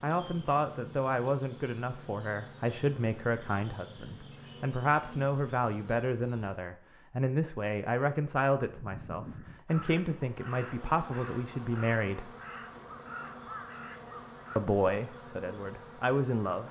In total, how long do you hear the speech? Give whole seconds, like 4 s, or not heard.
14 s.